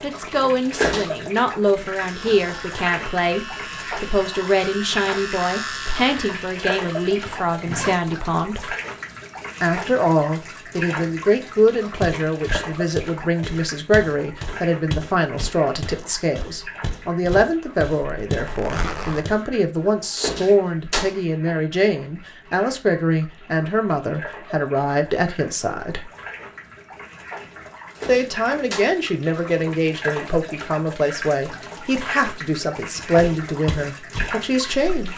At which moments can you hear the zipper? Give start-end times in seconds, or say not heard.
7.2-8.0, 18.2-19.2.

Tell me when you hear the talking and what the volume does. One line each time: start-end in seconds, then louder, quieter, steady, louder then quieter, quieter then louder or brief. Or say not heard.
0.0-8.8 steady
9.6-26.1 steady
28.1-35.1 steady.